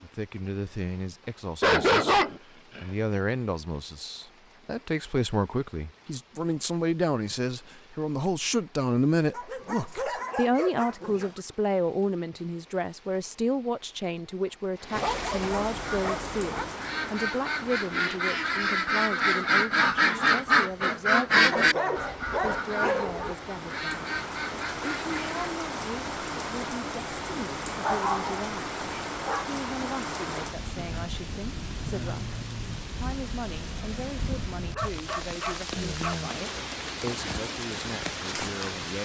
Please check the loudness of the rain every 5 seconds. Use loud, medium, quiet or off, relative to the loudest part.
quiet, quiet, quiet, loud, medium, loud, loud, loud.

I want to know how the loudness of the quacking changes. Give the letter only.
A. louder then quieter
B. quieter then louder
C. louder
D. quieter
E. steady
A.